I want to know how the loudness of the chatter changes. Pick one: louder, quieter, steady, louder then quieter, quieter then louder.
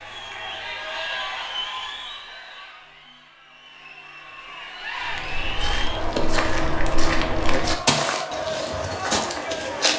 quieter then louder.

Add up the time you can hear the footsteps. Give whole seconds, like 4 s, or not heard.
5 s.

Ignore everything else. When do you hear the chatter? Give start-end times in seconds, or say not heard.
0.0-9.9.